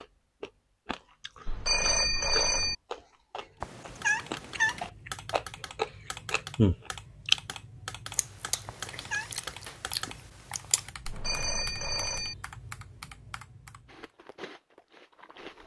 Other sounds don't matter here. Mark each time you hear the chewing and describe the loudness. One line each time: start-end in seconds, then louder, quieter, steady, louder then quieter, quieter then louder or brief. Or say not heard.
0.0-12.1 louder then quieter
13.9-15.6 brief.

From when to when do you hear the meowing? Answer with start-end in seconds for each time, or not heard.
3.6-4.9, 8.7-9.3.